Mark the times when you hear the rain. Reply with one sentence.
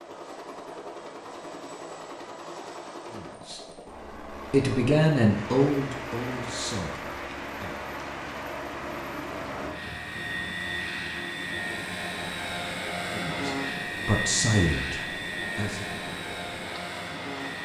The rain can be heard from 5.3 to 17.6 s.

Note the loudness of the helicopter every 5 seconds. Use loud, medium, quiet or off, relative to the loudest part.
medium, medium, loud, loud.